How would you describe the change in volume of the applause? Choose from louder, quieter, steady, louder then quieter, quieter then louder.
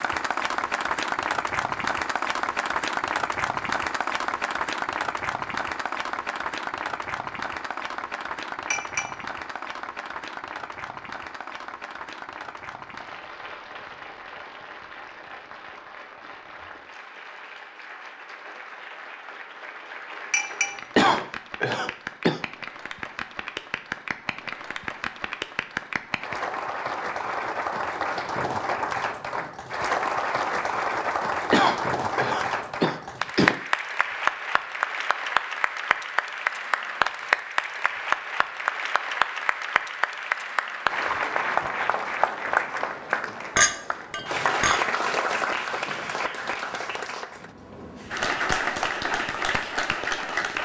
quieter then louder.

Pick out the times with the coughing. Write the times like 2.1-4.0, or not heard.
20.9-22.4, 31.5-33.5.